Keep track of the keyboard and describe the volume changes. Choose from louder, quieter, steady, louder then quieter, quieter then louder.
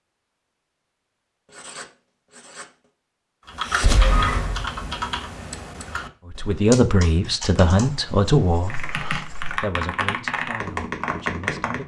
quieter then louder.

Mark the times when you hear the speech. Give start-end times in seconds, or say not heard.
6.3-11.8.